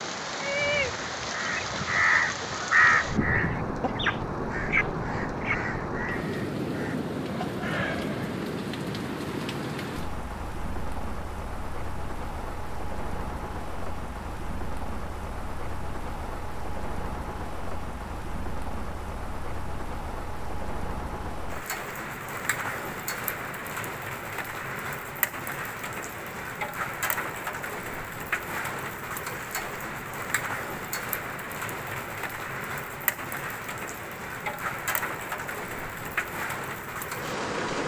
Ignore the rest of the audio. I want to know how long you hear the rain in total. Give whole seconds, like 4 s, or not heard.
38 s.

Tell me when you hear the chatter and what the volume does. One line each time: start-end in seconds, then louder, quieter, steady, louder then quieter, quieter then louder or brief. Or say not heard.
not heard.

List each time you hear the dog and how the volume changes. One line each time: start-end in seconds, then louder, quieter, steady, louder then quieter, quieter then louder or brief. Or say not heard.
not heard.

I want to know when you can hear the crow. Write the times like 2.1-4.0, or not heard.
0.4-8.0.